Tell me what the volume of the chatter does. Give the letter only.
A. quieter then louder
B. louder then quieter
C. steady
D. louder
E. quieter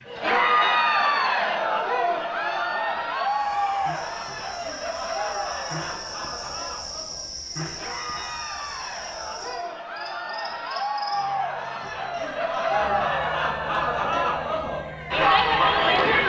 A.